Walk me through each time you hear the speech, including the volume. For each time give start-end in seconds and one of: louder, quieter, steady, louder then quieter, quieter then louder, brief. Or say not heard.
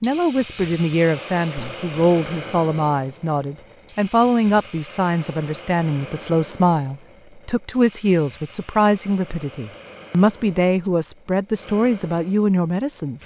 0.0-13.2 steady.